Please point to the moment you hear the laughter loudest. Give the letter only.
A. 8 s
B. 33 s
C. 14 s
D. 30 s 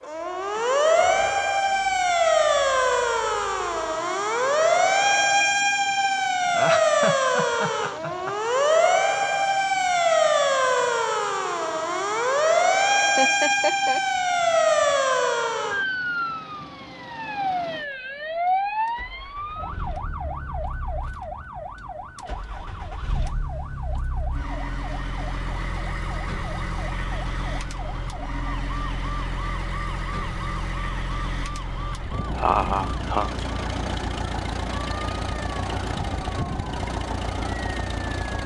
B.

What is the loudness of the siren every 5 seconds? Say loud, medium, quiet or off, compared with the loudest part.
loud, loud, loud, medium, quiet, quiet, quiet, quiet.